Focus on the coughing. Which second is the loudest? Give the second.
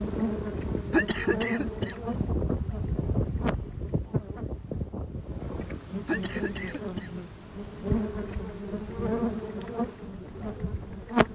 1 s.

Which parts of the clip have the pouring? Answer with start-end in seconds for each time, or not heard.
not heard.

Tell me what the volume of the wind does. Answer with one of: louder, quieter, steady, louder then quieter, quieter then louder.
quieter.